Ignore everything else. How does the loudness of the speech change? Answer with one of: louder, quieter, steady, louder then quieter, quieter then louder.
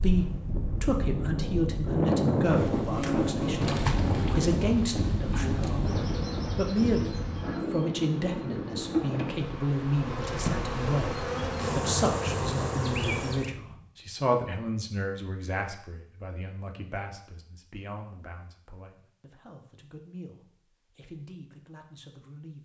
quieter.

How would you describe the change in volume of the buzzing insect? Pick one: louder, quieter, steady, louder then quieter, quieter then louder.
quieter then louder.